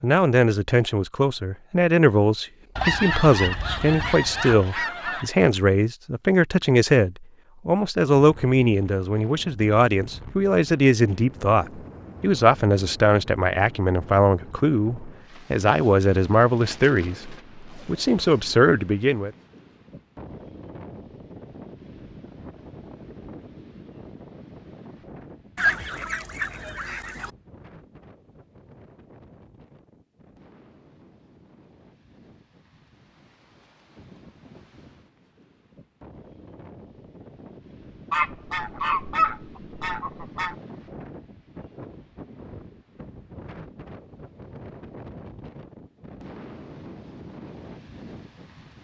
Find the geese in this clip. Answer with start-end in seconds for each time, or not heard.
2.8-5.3, 25.6-27.3, 38.1-40.5.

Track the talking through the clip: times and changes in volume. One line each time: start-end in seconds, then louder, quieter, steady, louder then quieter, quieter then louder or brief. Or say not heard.
0.0-19.3 steady.